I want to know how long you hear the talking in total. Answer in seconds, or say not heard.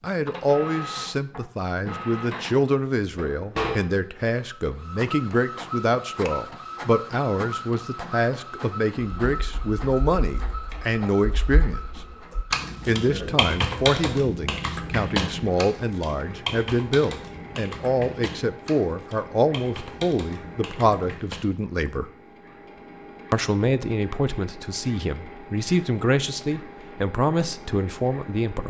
26 s.